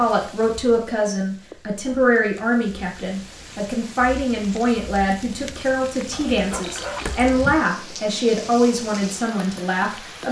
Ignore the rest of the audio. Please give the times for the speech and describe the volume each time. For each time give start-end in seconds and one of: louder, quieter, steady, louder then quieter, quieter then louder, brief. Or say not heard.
0.0-10.2 steady.